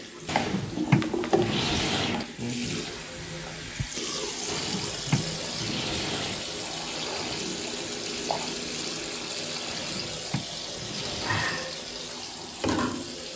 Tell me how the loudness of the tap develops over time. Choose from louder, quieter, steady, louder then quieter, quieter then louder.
steady.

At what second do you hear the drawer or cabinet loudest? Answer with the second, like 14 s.
1 s.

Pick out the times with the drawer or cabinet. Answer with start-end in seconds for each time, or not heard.
0.2-2.2, 4.5-6.5, 9.7-11.7.